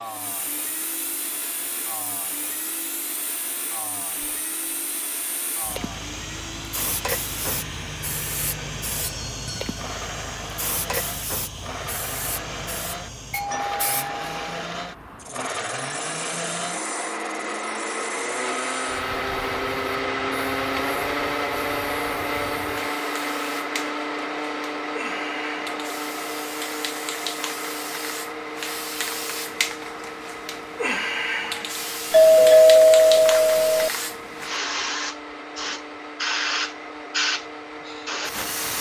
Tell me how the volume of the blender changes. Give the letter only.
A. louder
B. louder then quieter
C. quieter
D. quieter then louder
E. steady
B.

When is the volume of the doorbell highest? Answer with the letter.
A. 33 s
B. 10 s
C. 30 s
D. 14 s
A.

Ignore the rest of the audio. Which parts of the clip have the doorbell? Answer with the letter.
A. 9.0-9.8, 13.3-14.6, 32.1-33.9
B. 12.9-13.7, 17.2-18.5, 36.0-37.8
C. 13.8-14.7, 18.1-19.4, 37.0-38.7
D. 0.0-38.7
A.